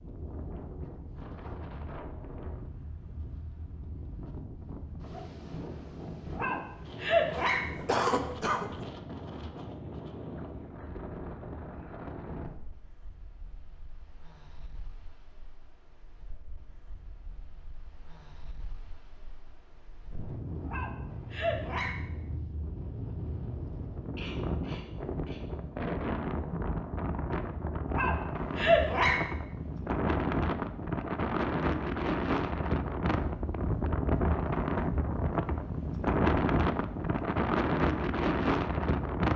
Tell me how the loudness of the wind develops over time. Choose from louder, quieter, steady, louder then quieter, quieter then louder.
louder.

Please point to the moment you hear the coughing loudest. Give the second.
8 s.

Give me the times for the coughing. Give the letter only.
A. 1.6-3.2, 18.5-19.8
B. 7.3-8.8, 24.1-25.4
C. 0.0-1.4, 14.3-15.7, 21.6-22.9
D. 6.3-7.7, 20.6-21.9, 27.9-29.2
B.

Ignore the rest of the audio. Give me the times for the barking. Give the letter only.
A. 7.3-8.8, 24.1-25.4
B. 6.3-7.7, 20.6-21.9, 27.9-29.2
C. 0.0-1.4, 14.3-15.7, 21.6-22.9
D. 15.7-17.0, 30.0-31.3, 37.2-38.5
B.